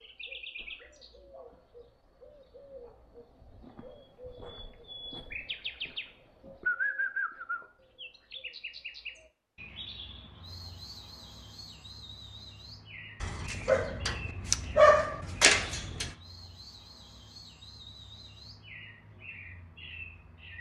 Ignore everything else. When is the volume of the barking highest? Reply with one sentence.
The volume of the barking peaks at 15 seconds.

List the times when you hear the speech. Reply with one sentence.
You can't hear the speech here.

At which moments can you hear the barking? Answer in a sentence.
The barking can be heard from 13.2 to 16.1 s.